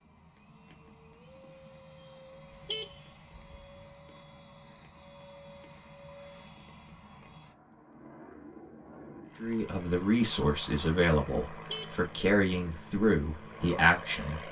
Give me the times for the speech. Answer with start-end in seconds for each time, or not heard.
9.3-14.4.